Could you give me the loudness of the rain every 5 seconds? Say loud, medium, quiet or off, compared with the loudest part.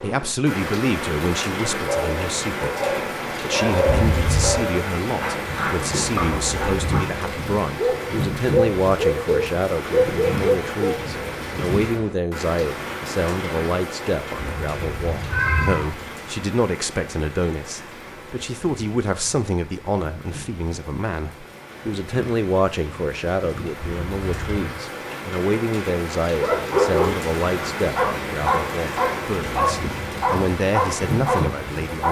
loud, loud, loud, medium, medium, loud, loud.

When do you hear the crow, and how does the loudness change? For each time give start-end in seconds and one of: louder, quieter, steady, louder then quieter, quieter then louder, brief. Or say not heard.
not heard.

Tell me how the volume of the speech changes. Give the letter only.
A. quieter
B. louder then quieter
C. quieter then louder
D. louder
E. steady
E.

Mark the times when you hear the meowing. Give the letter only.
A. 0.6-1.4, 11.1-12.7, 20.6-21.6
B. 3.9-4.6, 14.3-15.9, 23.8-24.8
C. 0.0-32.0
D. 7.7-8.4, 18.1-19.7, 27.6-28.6
B.